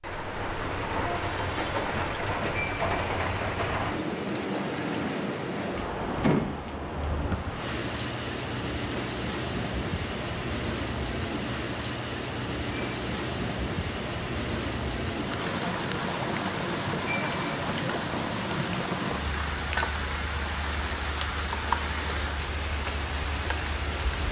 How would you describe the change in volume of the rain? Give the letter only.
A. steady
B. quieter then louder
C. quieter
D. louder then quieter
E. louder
A.